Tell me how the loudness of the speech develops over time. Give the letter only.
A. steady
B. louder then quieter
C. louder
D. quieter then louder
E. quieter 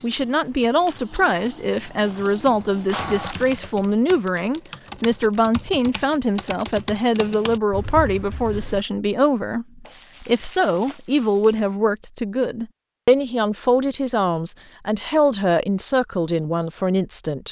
A.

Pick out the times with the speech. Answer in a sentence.
The speech can be heard from 0.0 to 17.4 s.